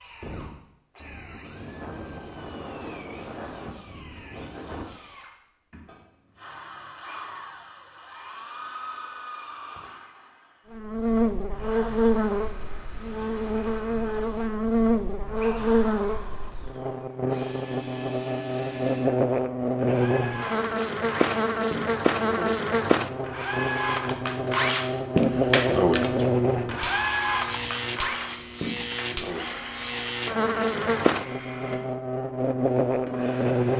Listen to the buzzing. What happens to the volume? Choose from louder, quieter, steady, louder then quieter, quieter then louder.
steady.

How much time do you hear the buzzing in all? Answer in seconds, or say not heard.
23 s.